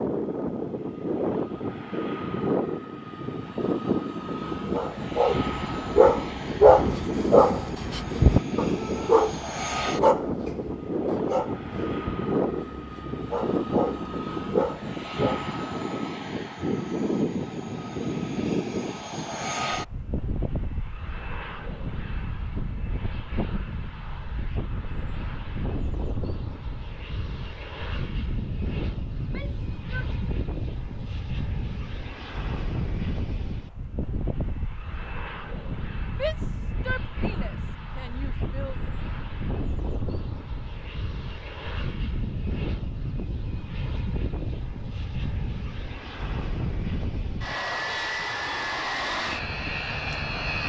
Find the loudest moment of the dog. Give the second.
7 s.